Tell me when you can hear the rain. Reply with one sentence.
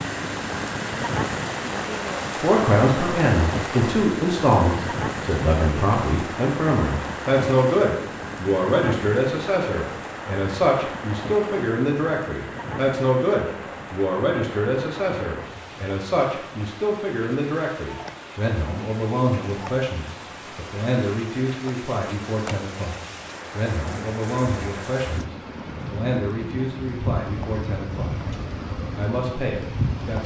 You can hear the rain from 0.0 to 30.2 s.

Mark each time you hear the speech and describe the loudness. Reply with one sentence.
The speech can be heard from 2.4 to 28.1 s, getting quieter; and briefly from 28.8 to 30.2 s.